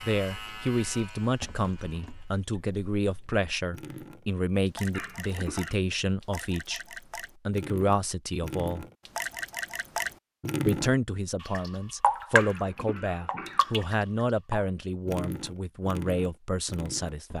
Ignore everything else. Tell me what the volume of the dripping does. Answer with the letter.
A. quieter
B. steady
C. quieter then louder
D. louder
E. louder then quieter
E.